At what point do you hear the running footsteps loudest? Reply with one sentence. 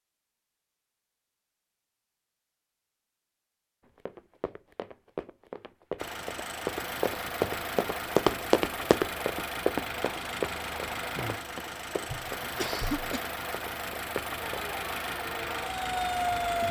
The volume of the running footsteps peaks at 8 seconds.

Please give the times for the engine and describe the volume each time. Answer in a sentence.
You can hear the engine from 6.0 to 16.6 s, at a steady volume.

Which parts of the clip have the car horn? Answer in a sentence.
You can't hear the car horn here.